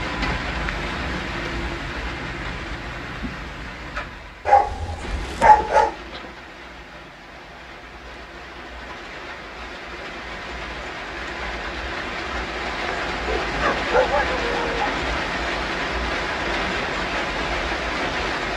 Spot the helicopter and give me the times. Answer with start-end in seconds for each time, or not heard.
not heard.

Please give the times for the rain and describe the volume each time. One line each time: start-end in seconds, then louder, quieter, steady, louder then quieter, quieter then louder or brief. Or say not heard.
0.0-18.5 quieter then louder.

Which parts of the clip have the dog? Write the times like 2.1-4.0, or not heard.
4.5-6.0, 13.2-14.9.